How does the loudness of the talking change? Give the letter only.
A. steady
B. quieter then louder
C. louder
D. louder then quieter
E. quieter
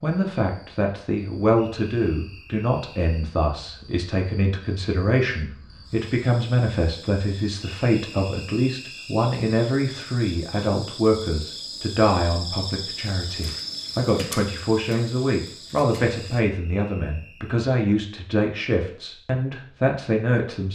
A.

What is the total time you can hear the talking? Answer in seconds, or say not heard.
21 s.